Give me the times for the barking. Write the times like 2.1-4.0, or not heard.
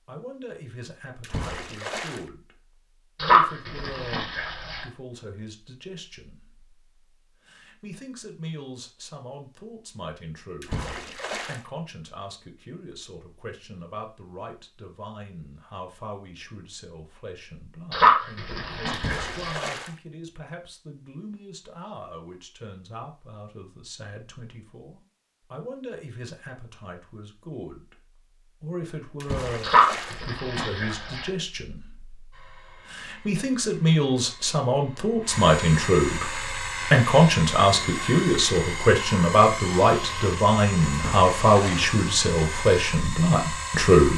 3.2-4.8, 17.9-19.6, 29.6-31.3.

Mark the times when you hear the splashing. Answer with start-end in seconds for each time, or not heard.
1.2-2.2, 10.6-11.6, 18.9-19.9, 29.2-30.2, 40.9-42.0.